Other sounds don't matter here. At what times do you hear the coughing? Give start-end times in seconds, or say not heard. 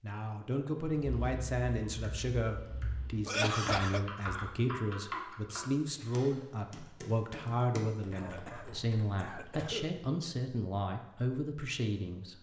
3.2-4.0, 8.2-9.9.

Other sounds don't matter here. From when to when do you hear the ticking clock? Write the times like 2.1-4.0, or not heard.
not heard.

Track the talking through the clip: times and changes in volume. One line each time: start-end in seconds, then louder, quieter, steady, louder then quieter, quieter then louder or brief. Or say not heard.
0.0-12.3 steady.